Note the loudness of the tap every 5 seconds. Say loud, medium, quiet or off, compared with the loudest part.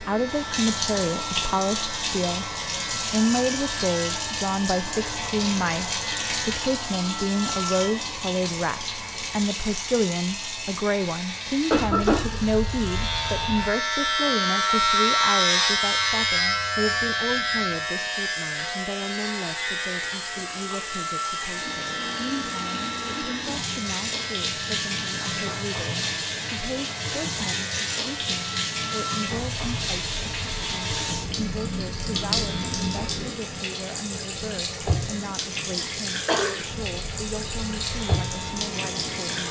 loud, loud, medium, quiet, loud, loud, loud, loud.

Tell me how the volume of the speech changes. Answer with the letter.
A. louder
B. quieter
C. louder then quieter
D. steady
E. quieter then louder
B.